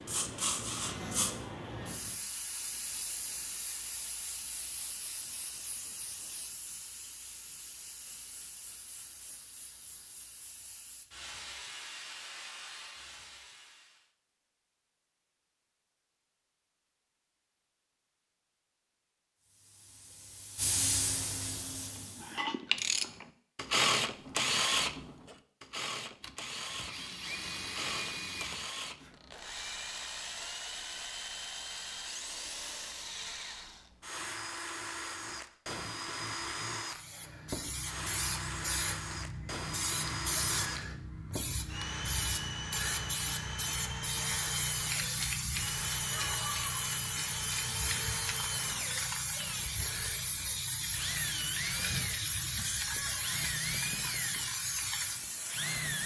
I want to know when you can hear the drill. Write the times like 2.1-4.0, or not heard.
0.0-2.2, 26.2-56.0.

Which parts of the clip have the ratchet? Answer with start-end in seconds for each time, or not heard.
21.9-29.4.